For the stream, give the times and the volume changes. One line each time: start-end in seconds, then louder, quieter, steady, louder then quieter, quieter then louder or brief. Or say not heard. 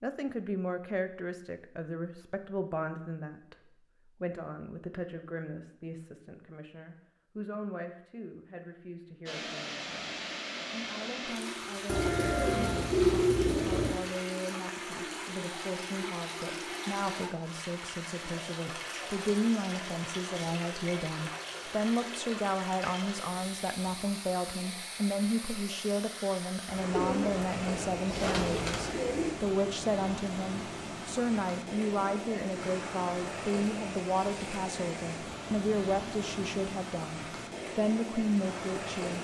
9.2-39.1 steady.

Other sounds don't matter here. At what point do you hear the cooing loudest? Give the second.
13 s.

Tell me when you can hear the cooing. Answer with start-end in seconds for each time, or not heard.
11.8-13.9, 26.9-29.3.